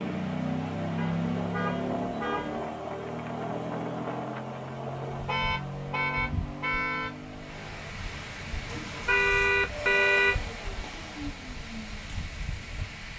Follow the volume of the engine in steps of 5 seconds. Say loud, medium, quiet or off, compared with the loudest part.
loud, medium, medium.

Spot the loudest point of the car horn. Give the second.
10 s.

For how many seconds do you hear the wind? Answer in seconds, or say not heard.
13 s.